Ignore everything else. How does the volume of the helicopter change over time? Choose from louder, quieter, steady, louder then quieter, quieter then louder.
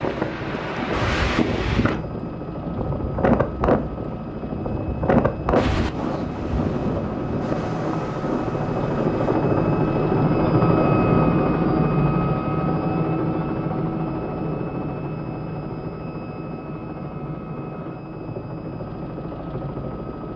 louder then quieter.